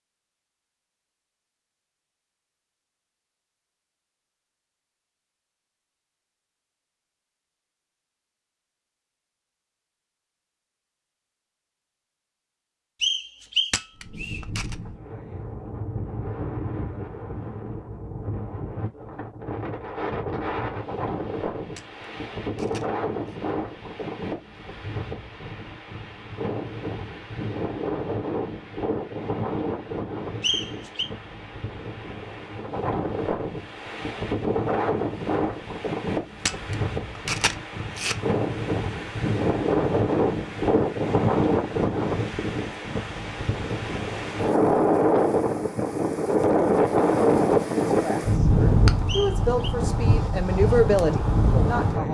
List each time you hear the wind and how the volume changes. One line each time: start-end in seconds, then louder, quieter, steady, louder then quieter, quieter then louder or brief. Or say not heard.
13.9-52.0 louder.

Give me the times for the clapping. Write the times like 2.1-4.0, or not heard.
not heard.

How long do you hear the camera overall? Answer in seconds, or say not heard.
4 s.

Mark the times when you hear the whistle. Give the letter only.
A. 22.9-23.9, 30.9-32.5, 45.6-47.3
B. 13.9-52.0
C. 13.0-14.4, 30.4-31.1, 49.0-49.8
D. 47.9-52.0
C.